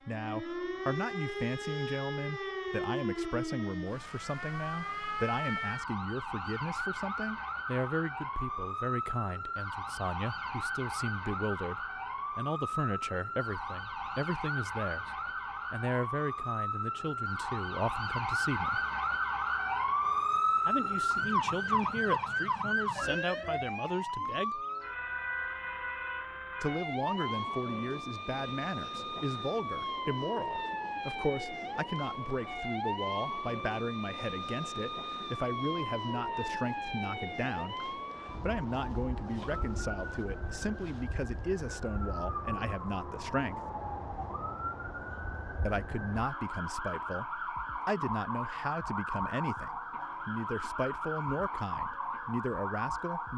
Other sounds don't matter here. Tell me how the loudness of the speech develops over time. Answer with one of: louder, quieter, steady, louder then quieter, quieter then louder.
steady.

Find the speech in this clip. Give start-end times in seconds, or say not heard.
0.1-15.1, 15.7-18.8, 20.6-24.6, 26.6-43.6, 45.6-53.3.